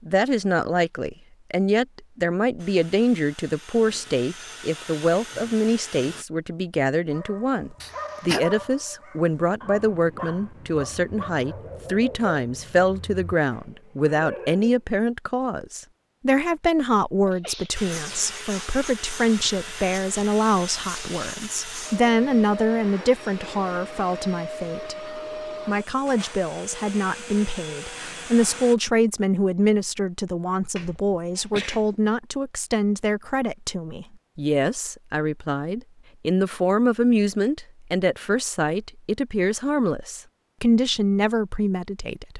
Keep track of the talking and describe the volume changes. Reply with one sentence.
The volume of the talking stays about the same.